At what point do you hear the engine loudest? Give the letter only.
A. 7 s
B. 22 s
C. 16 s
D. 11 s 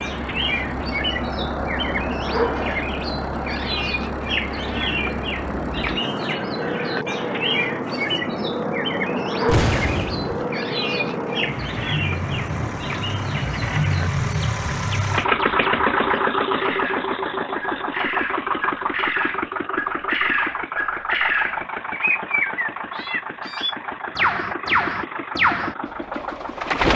C.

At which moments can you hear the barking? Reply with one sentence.
The barking can't be heard in this clip.